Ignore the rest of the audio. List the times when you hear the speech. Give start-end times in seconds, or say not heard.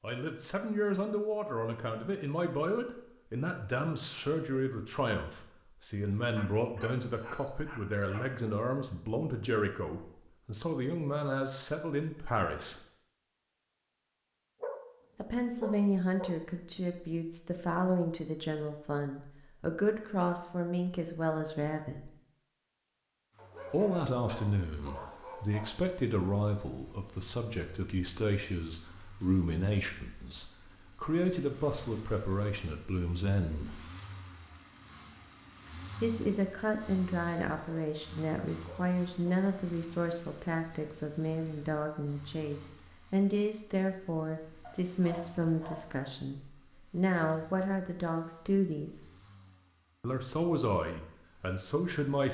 0.0-12.8, 15.2-22.1, 23.7-33.8, 36.0-49.0, 50.0-52.3.